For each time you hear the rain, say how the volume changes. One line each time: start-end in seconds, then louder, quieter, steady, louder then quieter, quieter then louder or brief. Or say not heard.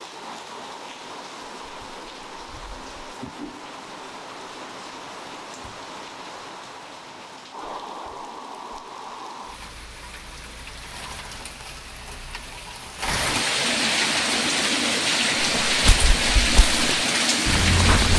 0.0-18.1 louder.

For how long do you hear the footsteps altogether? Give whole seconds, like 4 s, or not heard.
3 s.